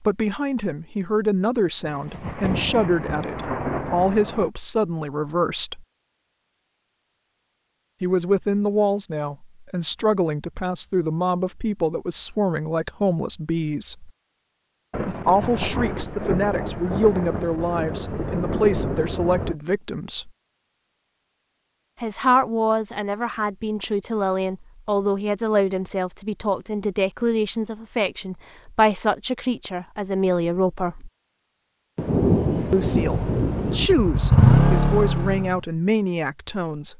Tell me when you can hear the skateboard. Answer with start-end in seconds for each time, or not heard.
not heard.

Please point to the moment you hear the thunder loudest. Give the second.
32 s.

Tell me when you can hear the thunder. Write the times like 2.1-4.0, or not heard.
1.9-4.5, 14.9-19.6, 31.9-33.9.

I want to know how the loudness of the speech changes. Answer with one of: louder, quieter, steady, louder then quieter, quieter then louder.
steady.